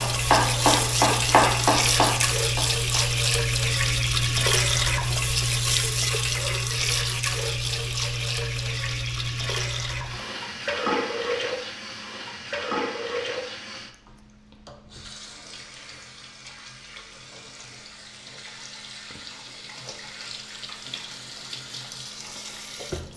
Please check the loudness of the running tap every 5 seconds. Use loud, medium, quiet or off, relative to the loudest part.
loud, loud, medium, quiet, quiet.